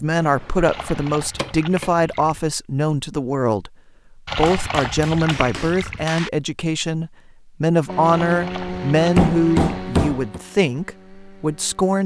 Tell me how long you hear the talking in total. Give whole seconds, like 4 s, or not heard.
12 s.